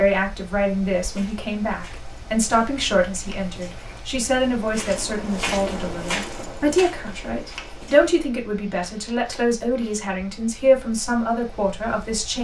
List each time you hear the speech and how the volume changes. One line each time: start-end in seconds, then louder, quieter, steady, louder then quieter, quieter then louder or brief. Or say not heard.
0.0-12.3 steady.